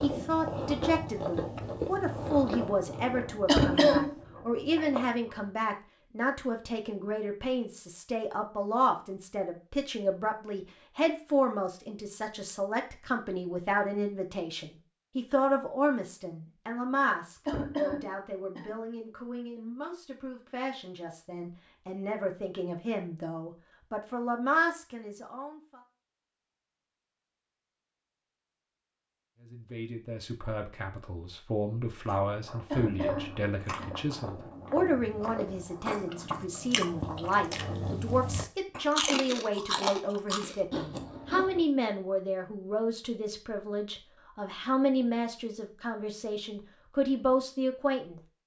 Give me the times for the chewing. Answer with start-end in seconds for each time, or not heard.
0.0-5.5, 31.9-41.6.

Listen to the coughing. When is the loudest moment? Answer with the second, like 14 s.
4 s.